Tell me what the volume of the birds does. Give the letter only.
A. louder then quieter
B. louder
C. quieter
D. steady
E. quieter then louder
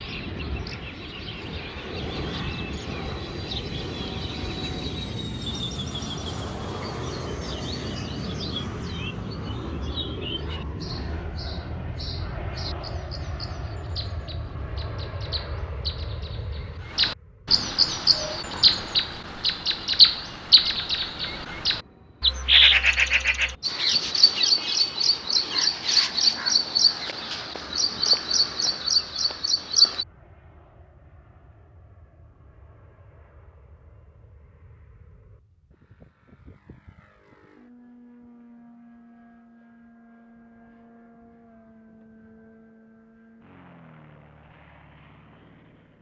B.